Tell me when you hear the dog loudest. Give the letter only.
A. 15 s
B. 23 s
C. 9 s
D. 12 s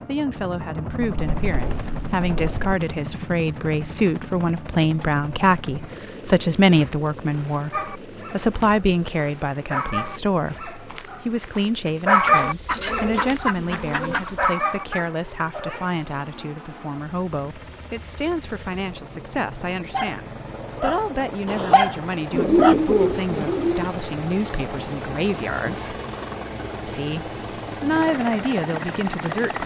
D.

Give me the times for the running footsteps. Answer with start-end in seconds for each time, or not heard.
not heard.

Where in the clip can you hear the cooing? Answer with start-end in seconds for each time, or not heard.
1.2-2.8, 12.2-14.4, 22.3-23.9.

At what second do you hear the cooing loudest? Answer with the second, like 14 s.
23 s.